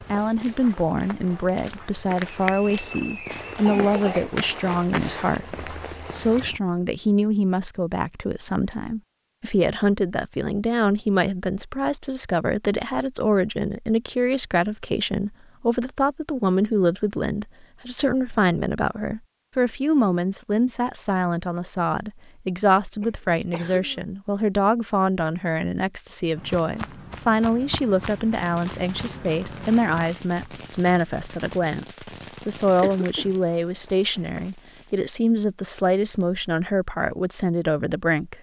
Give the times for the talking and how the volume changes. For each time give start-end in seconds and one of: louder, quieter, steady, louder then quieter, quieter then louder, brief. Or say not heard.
0.1-38.3 steady.